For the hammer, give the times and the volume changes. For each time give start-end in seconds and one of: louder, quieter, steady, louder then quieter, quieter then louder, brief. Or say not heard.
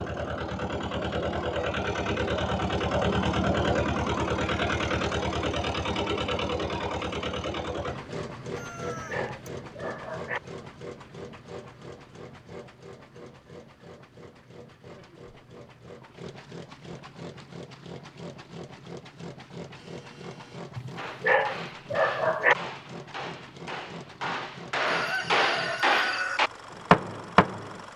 20.9-27.9 louder.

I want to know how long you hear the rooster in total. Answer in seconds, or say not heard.
2 s.